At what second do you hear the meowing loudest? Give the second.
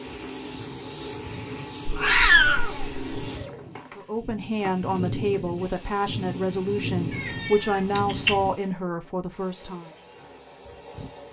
2 s.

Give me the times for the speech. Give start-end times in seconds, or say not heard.
4.0-9.9.